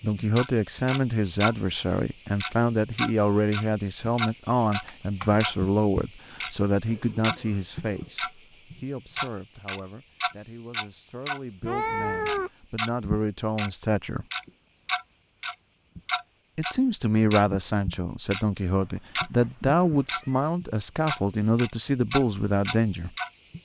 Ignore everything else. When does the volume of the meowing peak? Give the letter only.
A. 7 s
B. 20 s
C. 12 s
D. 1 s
C.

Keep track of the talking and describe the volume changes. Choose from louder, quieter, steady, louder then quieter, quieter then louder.
quieter then louder.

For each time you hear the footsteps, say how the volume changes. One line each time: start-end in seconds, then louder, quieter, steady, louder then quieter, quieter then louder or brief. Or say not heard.
not heard.